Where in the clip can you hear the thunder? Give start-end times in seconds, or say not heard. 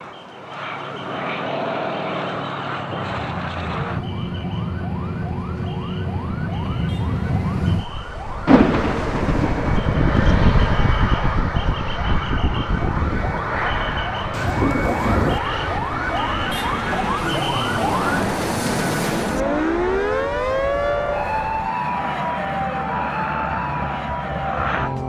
8.4-9.8, 14.3-15.4.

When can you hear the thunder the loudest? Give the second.
9 s.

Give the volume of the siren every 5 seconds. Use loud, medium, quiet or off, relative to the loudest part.
quiet, quiet, medium, loud, loud.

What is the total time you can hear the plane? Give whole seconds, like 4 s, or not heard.
25 s.